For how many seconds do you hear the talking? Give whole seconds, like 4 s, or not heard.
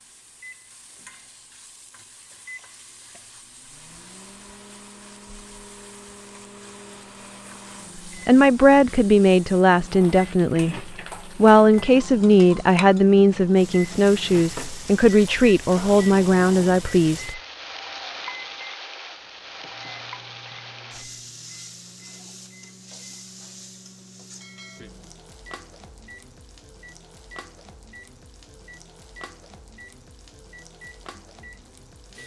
9 s.